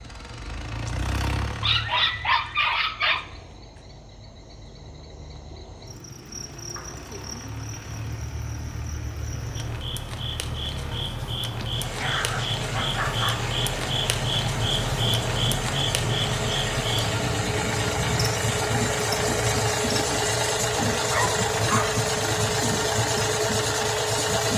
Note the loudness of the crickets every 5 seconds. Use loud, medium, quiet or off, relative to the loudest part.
quiet, medium, loud, loud, medium.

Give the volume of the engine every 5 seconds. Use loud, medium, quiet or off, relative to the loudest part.
medium, quiet, medium, loud, loud.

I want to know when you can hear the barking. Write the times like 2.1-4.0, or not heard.
1.6-3.2, 11.6-13.4, 21.1-21.9.